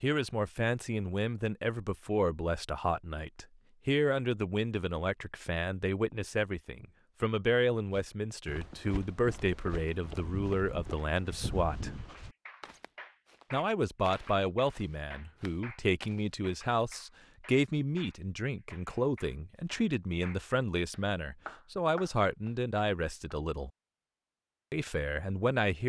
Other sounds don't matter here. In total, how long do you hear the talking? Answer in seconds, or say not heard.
23 s.